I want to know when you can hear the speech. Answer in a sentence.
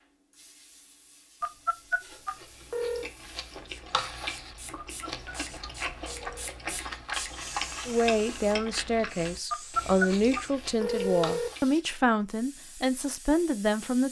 You can hear the speech from 7.8 to 14.0 s.